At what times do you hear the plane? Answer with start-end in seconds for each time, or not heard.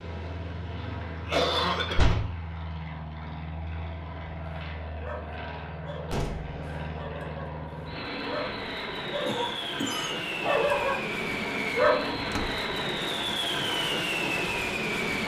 0.0-15.2.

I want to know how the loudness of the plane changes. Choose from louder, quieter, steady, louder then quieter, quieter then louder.
louder.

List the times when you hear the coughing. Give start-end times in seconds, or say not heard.
0.8-2.1, 9.2-10.1.